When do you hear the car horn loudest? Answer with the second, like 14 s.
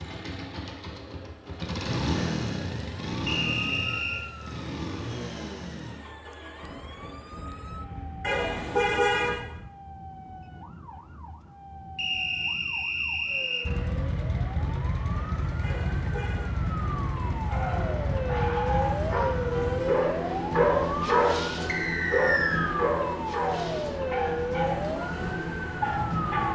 9 s.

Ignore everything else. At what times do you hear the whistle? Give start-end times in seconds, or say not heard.
3.2-4.2, 11.9-13.7, 21.6-22.7.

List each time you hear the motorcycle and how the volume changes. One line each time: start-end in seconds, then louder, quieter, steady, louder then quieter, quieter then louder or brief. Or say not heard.
0.0-9.6 quieter
13.6-26.4 quieter.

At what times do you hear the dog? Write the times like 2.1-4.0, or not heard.
17.5-26.4.